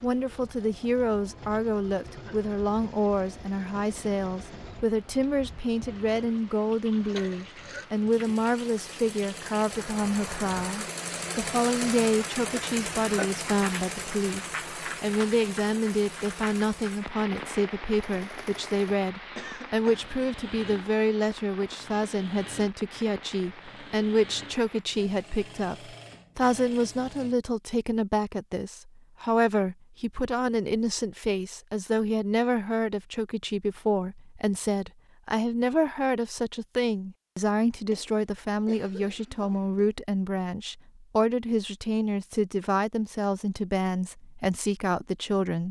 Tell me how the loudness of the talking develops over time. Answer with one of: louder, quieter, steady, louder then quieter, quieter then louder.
steady.